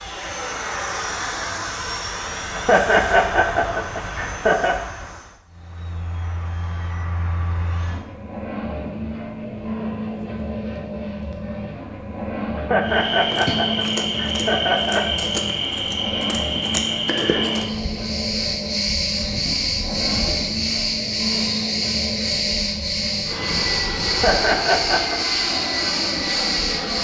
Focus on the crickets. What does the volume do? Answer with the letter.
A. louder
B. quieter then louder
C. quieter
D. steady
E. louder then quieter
D.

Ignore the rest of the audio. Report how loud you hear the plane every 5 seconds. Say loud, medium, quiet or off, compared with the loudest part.
loud, medium, loud, loud, loud, loud.